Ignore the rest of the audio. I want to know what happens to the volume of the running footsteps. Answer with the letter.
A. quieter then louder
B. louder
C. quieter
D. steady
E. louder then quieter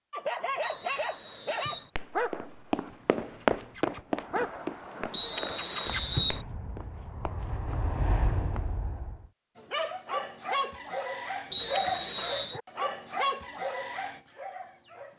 E.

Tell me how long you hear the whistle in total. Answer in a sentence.
You can hear the whistle for 4 seconds altogether.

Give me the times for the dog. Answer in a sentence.
The dog can be heard from 0.1 to 6.0 s and from 9.6 to 15.1 s.